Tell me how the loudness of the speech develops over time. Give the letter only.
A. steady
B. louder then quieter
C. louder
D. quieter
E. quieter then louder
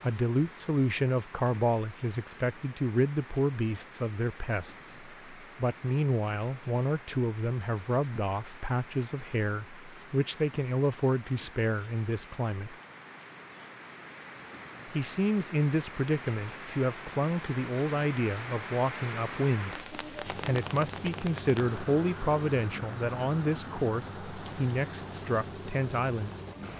A.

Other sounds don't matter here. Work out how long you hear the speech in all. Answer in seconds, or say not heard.
24 s.